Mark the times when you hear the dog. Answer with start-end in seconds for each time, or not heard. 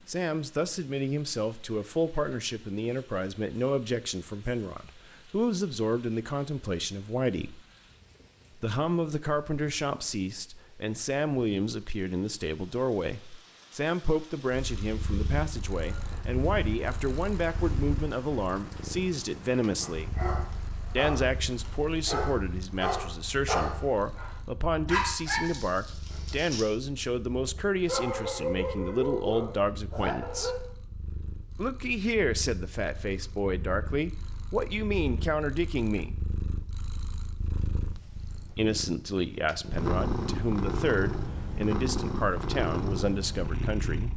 19.8-30.6.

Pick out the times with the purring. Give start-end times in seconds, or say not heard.
14.5-44.1.